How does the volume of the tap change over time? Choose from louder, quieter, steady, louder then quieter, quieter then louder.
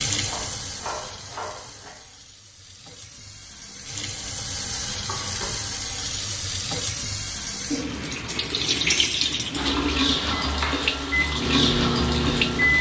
louder.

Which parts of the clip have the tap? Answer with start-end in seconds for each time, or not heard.
0.0-12.7.